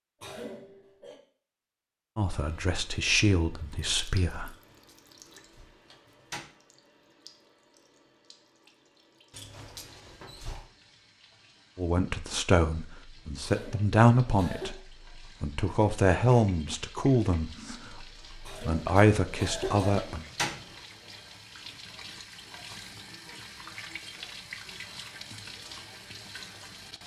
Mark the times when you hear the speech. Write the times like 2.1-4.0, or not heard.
2.1-4.5, 11.8-14.8, 15.4-20.2.